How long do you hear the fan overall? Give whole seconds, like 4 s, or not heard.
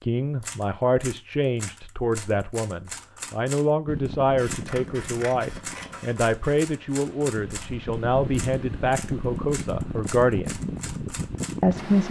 8 s.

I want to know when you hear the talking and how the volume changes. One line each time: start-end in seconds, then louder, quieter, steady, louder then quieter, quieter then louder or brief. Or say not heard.
0.0-10.6 steady
11.6-12.0 brief.